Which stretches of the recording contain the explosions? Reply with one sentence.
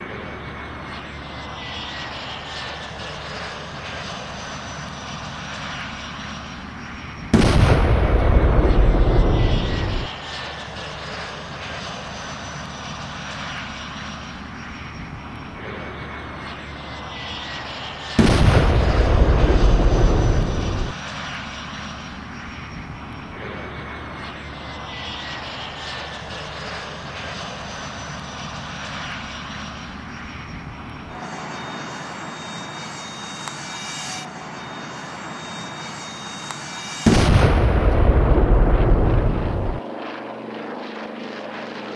The explosions can be heard from 7.3 to 10.1 s, from 18.1 to 20.9 s and from 37.0 to 39.8 s.